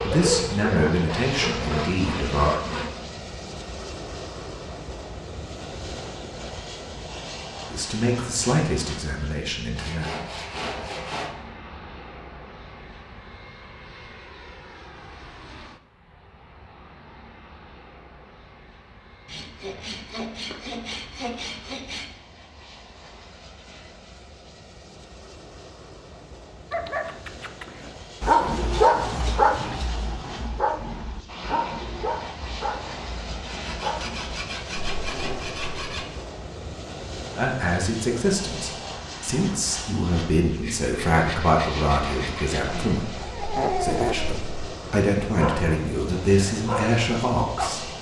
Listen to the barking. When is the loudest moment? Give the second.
29 s.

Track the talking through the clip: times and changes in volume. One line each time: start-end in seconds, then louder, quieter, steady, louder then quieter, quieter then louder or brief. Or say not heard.
0.0-2.6 brief
7.7-10.1 brief
37.4-47.9 steady.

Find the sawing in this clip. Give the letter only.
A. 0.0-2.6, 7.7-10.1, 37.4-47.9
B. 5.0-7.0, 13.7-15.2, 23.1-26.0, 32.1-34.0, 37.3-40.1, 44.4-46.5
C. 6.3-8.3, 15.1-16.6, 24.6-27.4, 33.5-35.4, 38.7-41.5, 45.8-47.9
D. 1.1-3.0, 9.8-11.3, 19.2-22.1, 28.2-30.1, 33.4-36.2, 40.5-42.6
D.